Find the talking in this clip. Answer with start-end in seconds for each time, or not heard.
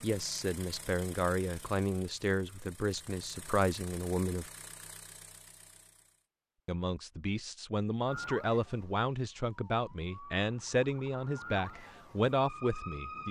0.0-4.5, 6.7-13.2.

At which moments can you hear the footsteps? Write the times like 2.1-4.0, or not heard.
not heard.